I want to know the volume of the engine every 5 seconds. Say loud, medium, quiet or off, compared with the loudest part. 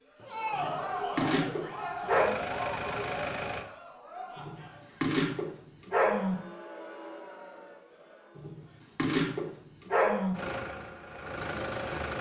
loud, off, loud.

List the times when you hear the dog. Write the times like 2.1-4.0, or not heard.
0.5-2.3, 4.3-6.3, 8.3-10.3.